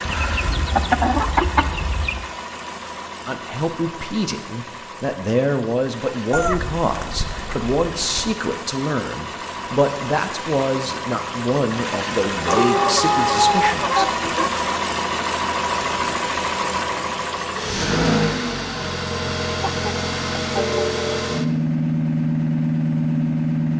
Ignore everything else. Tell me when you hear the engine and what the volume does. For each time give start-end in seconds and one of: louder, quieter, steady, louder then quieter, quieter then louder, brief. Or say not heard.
0.0-23.7 louder.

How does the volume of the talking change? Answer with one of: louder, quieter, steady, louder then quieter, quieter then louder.
steady.